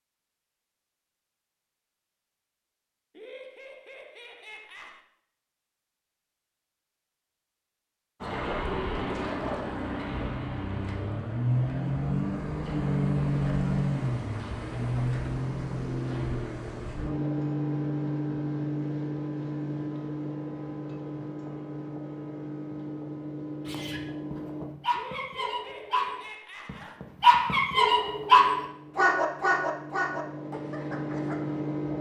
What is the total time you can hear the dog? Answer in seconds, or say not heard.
8 s.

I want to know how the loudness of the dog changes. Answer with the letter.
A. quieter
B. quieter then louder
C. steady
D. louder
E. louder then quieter
E.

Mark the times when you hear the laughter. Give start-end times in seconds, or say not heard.
3.1-5.0, 24.9-27.1.